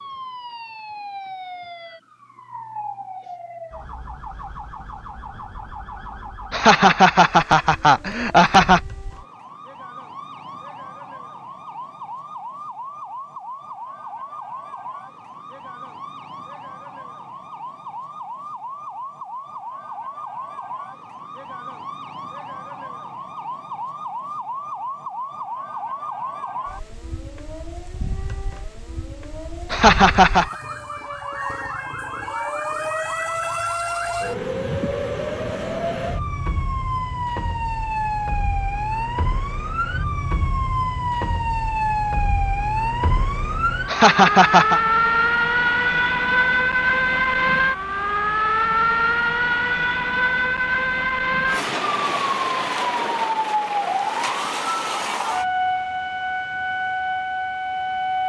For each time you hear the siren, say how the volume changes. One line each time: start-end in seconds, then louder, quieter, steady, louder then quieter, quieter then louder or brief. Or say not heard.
0.0-58.2 louder.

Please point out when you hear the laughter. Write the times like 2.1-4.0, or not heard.
6.5-8.8, 29.7-30.4, 43.9-44.8.